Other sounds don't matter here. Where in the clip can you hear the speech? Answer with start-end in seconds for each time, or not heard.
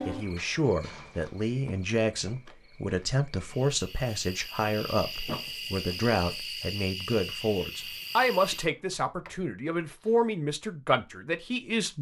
0.1-11.9.